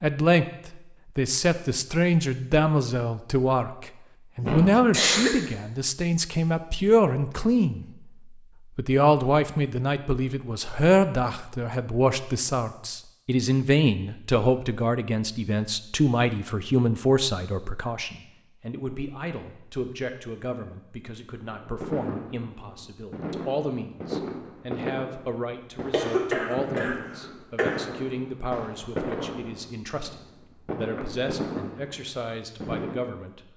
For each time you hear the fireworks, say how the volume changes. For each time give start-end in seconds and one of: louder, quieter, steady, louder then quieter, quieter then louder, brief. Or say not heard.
21.5-33.1 steady.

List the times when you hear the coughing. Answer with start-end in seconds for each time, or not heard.
4.4-5.4, 25.9-27.9.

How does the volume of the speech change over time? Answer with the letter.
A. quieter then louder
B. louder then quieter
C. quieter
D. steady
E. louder
C.